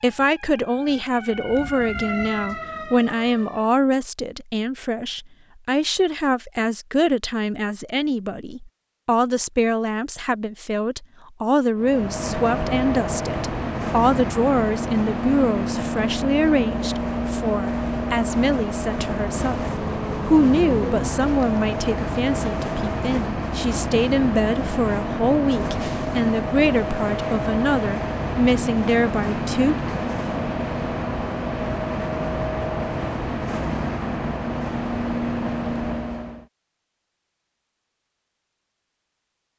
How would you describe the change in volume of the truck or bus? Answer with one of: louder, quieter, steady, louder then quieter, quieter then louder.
steady.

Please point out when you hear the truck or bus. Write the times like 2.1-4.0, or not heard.
11.8-36.5.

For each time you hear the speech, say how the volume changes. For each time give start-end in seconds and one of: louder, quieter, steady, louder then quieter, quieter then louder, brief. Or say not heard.
0.0-29.8 steady.